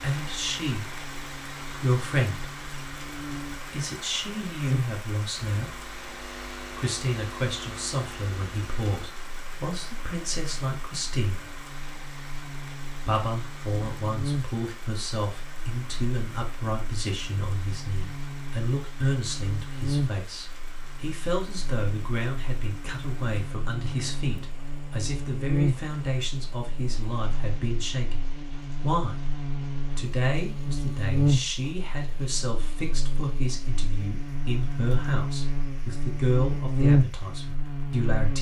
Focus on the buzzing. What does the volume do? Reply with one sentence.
The loudness of the buzzing goes up.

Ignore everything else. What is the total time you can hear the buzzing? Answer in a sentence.
The buzzing can be heard for 38 seconds in total.